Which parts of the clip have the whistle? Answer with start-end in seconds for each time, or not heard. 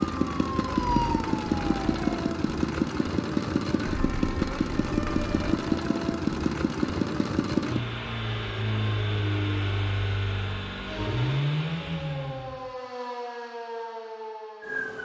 not heard.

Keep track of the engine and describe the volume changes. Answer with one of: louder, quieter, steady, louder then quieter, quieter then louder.
steady.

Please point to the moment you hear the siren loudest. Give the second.
1 s.